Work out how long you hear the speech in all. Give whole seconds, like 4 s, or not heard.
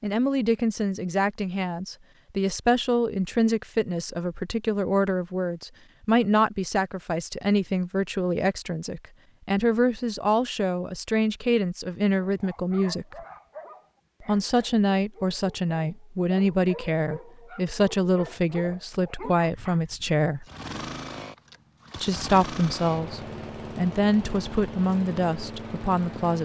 24 s.